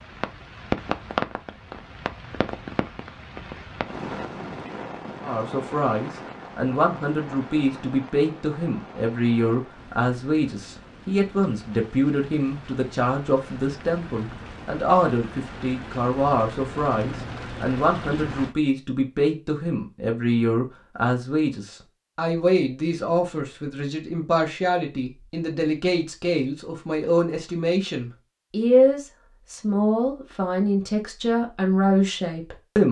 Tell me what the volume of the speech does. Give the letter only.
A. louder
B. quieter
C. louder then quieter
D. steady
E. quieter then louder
D.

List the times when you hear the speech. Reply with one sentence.
You can hear the speech from 5.2 to 32.8 s.